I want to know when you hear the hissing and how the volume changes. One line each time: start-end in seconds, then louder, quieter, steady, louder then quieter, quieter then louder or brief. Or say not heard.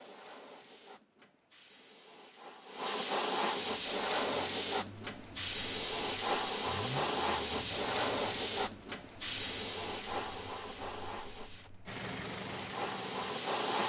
0.0-13.8 louder then quieter.